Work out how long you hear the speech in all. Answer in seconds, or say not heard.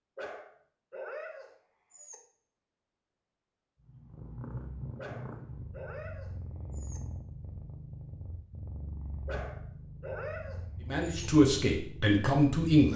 2 s.